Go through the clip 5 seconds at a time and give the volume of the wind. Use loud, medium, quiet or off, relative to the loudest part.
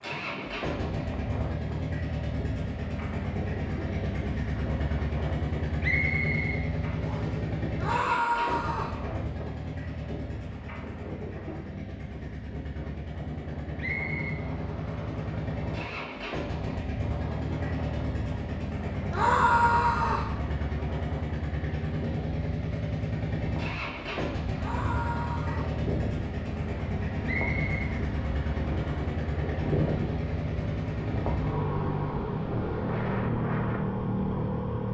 medium, medium, medium, medium, medium, loud, loud.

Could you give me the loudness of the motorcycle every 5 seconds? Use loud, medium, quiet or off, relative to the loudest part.
loud, loud, medium, loud, loud, loud, loud.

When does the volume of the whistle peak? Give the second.
6 s.